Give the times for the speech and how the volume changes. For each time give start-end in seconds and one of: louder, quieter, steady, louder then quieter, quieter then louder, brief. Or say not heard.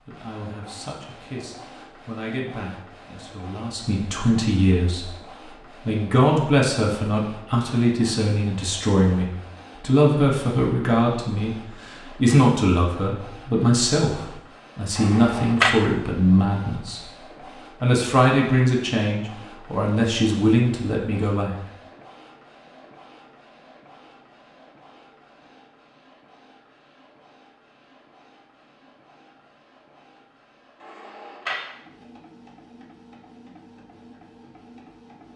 0.0-21.6 louder.